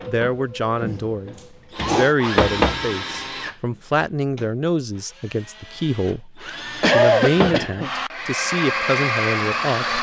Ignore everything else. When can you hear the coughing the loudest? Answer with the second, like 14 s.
7 s.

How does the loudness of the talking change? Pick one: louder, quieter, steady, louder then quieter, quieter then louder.
steady.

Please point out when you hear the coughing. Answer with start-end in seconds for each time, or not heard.
1.4-2.1, 6.5-7.9.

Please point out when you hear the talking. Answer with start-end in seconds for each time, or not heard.
0.1-9.9.